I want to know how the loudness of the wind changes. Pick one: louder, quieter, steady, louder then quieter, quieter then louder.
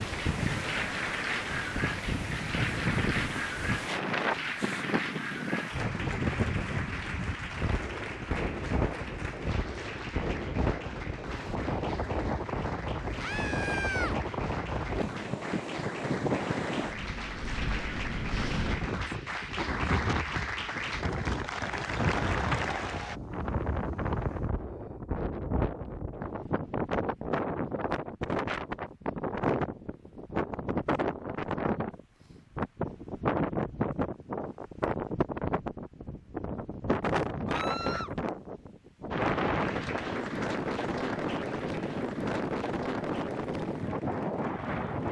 steady.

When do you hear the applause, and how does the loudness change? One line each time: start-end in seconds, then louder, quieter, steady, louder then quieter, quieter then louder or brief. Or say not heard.
0.0-23.2 quieter then louder
39.1-45.0 quieter.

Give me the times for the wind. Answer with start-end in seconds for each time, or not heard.
0.0-45.0.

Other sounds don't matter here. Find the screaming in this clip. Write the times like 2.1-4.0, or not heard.
13.2-14.2, 37.5-38.1.